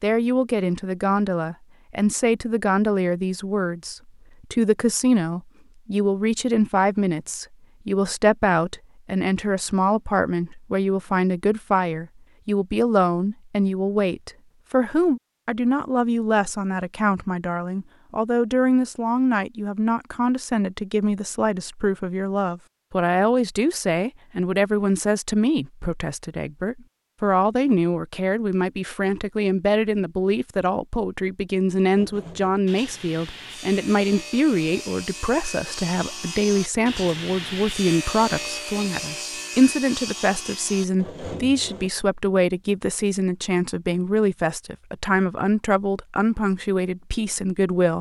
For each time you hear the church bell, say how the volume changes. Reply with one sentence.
You can't hear the church bell here.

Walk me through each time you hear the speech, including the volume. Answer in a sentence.
You can hear the speech from 0.0 to 47.9 s, at a steady volume.